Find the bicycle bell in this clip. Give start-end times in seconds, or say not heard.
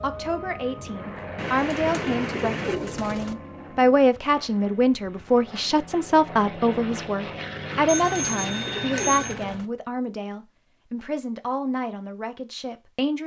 7.8-9.3.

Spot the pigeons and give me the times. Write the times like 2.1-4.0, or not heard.
1.4-3.4, 7.7-9.7.